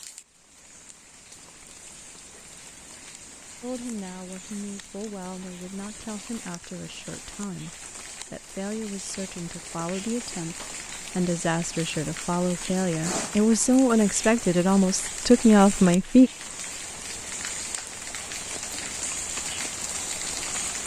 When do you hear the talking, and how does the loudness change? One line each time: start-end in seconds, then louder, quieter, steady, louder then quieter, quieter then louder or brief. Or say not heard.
3.6-16.3 louder.